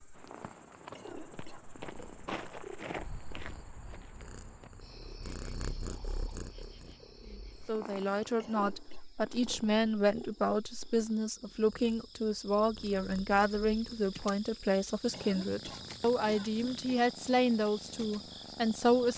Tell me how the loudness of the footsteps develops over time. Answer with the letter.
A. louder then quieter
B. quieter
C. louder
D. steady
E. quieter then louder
A.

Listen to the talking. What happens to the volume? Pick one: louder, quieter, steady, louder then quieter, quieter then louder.
steady.